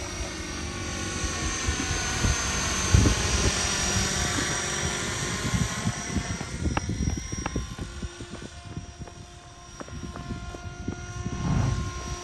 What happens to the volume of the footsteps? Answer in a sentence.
The loudness of the footsteps goes down, then up.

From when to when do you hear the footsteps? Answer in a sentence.
You can hear the footsteps from 6.4 to 12.1 s.